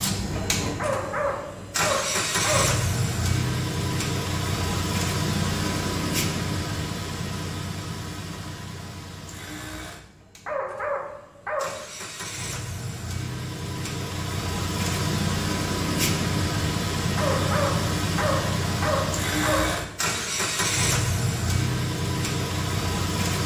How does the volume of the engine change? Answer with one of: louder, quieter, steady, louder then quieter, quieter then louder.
quieter then louder.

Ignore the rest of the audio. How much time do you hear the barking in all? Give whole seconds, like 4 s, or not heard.
6 s.